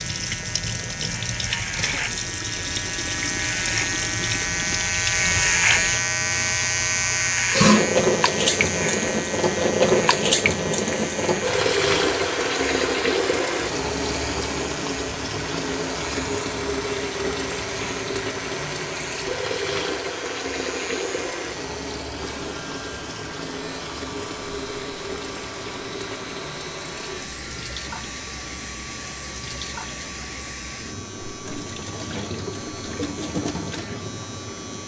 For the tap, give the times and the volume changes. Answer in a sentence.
You can hear the tap from 0.0 to 34.8 s, getting louder then quieter.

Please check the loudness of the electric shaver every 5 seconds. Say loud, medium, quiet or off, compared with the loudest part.
medium, loud, medium, quiet, quiet, quiet, quiet.